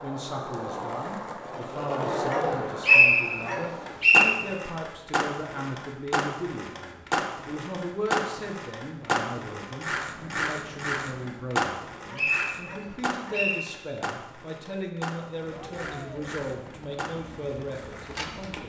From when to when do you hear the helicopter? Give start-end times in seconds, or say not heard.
15.3-18.6.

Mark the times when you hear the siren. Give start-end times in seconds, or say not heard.
not heard.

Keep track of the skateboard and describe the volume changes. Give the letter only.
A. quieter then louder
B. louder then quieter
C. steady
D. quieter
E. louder
D.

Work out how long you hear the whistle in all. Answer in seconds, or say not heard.
3 s.